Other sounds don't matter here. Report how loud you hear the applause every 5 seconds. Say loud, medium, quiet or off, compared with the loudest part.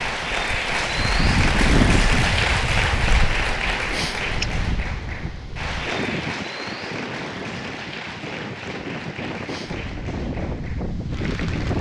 loud, medium, quiet.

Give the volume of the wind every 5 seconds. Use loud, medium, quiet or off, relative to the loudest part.
loud, medium, loud.